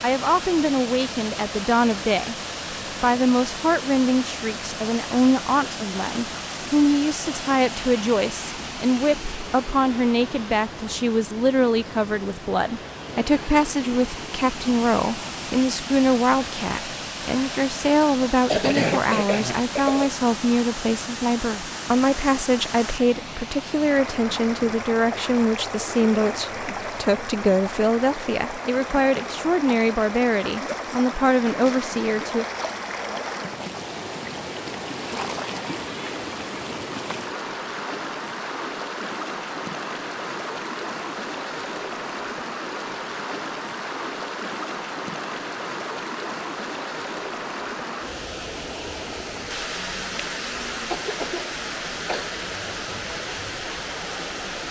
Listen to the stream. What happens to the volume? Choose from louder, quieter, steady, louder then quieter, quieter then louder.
steady.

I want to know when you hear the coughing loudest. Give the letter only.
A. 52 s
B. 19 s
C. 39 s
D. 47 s
B.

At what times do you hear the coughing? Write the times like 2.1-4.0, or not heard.
18.4-20.1, 49.8-52.3.